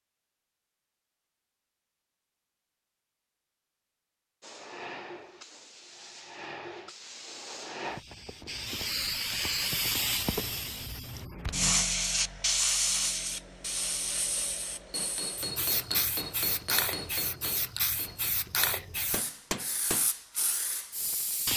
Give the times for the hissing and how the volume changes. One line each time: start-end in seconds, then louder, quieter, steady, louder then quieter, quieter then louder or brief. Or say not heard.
4.4-21.5 louder then quieter.